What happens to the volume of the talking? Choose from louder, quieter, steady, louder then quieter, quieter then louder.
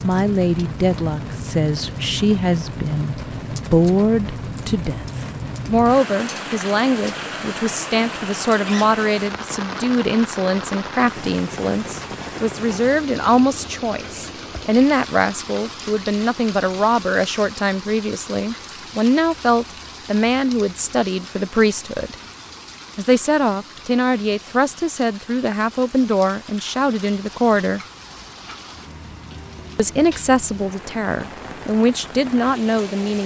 steady.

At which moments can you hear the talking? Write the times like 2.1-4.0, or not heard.
0.0-22.1, 22.9-27.8, 29.8-33.2.